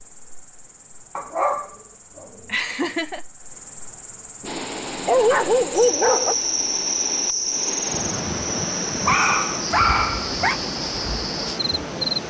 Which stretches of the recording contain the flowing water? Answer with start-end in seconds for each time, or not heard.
4.5-12.2.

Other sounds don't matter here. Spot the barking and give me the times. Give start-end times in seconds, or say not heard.
1.1-2.2, 4.4-6.3, 9.1-10.6.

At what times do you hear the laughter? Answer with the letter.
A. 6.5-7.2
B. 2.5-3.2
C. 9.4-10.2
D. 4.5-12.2
B.